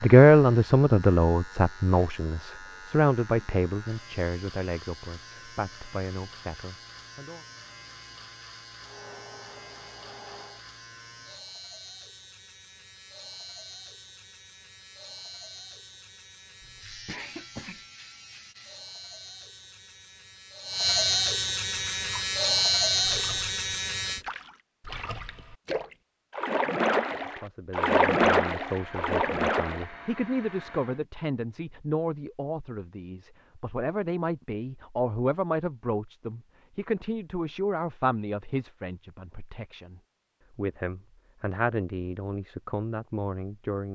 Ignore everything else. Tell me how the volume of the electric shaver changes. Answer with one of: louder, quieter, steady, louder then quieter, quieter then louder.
louder.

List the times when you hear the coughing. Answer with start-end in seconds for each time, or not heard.
16.6-17.9.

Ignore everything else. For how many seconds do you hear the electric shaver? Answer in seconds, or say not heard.
24 s.